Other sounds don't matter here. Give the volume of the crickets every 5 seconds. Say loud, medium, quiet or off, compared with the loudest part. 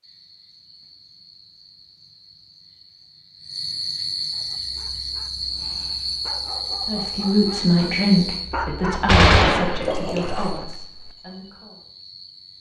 medium, loud, quiet.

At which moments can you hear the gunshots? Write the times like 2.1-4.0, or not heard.
9.1-10.5.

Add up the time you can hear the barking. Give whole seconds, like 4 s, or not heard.
7 s.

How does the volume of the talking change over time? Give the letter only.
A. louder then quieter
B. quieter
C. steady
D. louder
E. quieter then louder
B.